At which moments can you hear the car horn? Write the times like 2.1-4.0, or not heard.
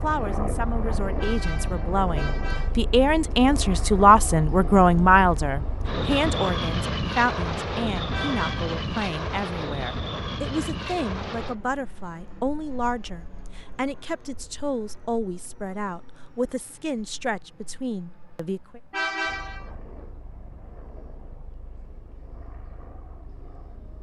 1.1-2.8, 8.1-8.8, 18.9-19.7.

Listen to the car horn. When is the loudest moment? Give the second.
19 s.